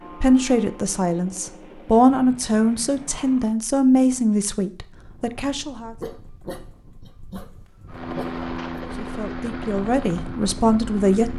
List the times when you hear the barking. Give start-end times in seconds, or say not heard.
6.0-8.8.